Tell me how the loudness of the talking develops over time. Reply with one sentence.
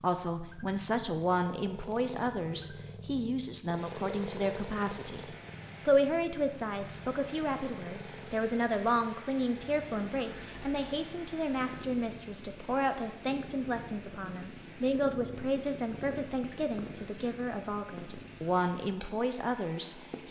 The volume of the talking stays about the same.